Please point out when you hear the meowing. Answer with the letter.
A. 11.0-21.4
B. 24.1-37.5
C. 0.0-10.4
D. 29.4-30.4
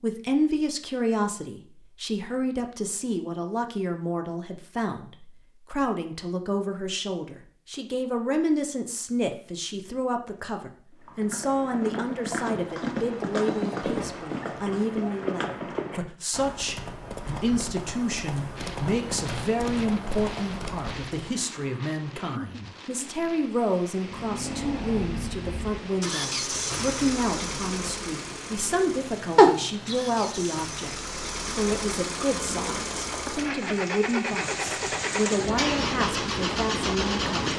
D.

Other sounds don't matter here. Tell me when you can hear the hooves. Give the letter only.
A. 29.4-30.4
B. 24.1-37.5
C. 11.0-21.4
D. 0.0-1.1
C.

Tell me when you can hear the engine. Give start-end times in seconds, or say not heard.
24.1-37.5.